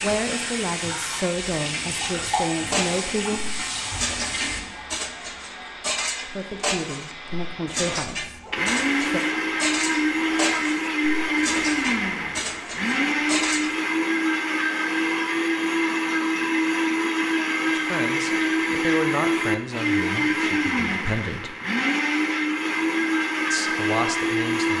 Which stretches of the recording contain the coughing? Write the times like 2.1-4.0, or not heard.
not heard.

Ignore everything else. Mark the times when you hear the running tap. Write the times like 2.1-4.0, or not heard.
0.0-4.7.